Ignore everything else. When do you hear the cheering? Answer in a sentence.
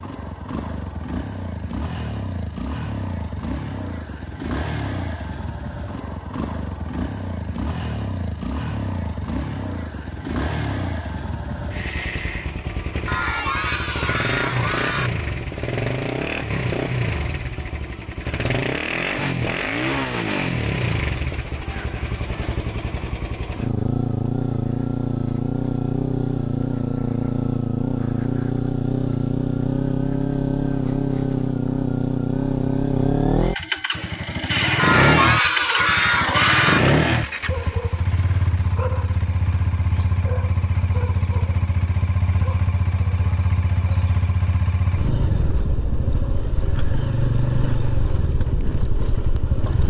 You can hear the cheering from 13.1 to 15.1 s and from 34.8 to 36.8 s.